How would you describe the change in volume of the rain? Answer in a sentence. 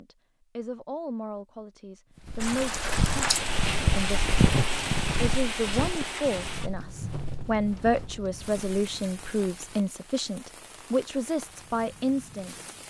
The volume of the rain goes down.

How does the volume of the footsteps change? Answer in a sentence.
The loudness of the footsteps goes up, then down.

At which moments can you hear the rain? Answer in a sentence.
You can hear the rain from 2.4 to 12.8 s.